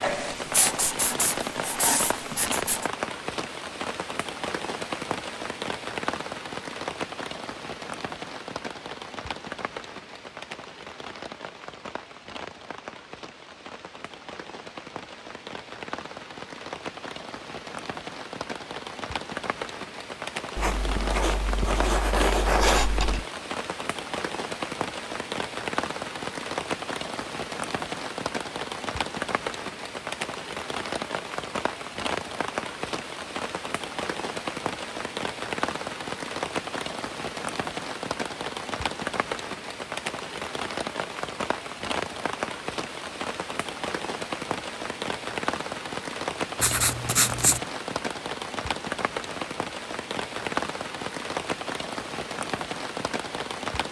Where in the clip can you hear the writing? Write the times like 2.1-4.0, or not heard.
0.0-2.9, 20.6-23.2, 46.6-47.6.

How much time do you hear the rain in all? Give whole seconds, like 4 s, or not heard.
54 s.